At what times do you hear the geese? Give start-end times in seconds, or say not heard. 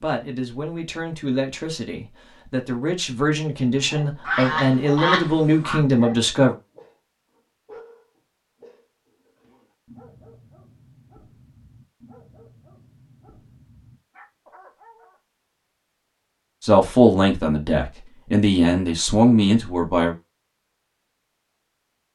4.2-5.8.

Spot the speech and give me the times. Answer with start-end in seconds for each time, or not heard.
0.0-6.5, 16.6-20.1.